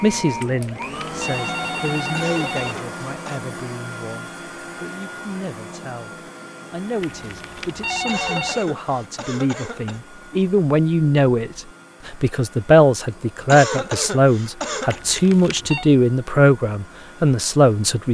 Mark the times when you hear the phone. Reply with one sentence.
You can hear the phone from 0.3 to 2.8 s, from 7.0 to 8.7 s and from 14.8 to 15.9 s.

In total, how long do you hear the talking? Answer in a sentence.
You can hear the talking for 18 seconds altogether.